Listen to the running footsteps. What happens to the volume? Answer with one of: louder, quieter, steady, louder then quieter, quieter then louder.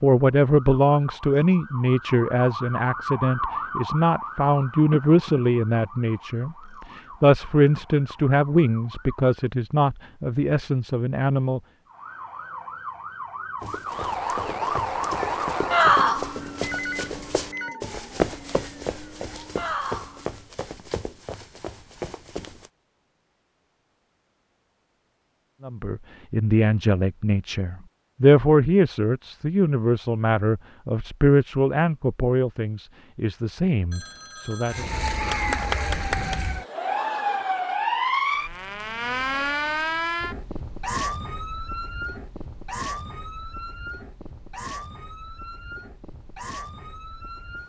louder then quieter.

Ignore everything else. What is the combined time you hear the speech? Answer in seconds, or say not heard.
21 s.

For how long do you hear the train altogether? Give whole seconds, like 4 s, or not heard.
not heard.